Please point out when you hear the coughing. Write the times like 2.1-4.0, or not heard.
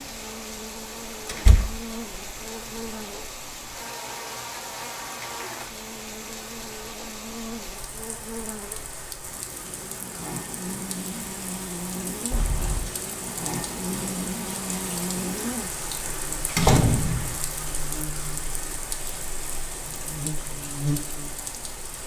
not heard.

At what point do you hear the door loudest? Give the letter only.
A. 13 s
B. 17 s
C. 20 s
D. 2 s
B.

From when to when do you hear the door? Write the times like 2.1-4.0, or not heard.
1.2-1.8, 12.2-12.9, 16.6-17.4.